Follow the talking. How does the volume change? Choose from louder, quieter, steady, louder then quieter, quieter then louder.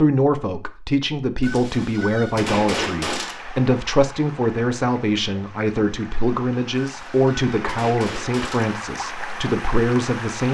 steady.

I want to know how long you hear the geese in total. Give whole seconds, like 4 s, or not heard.
4 s.